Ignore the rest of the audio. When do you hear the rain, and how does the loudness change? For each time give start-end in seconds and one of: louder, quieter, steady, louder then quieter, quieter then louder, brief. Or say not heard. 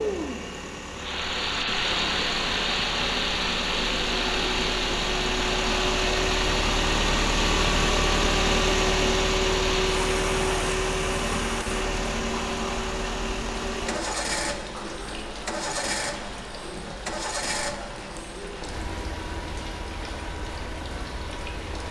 0.0-21.8 quieter.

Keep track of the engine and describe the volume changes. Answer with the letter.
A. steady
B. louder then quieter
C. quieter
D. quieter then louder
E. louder
B.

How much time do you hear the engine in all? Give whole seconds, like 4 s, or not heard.
22 s.